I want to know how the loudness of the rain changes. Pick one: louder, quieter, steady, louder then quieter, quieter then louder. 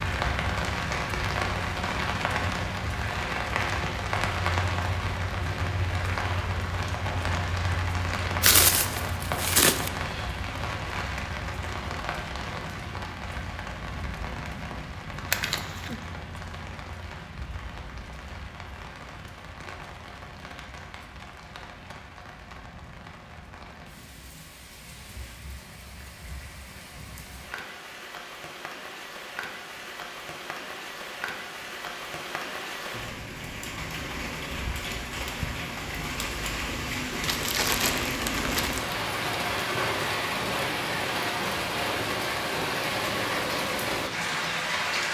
quieter then louder.